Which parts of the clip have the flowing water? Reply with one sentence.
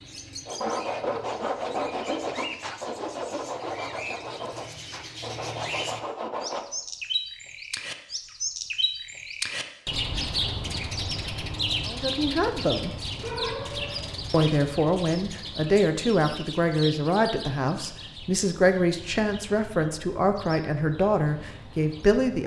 You can't hear the flowing water here.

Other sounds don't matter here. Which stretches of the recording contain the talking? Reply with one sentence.
The talking can be heard from 11.8 to 12.9 s and from 14.3 to 22.4 s.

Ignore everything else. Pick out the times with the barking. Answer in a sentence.
The barking can be heard from 13.2 to 14.4 s.